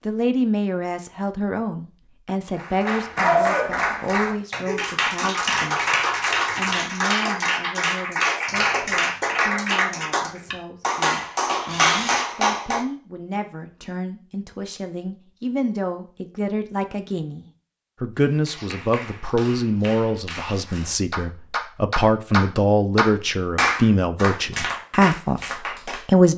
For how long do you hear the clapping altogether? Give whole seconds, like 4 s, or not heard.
18 s.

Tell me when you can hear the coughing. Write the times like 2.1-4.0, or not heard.
not heard.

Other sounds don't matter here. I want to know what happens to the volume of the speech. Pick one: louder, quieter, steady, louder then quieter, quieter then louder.
quieter then louder.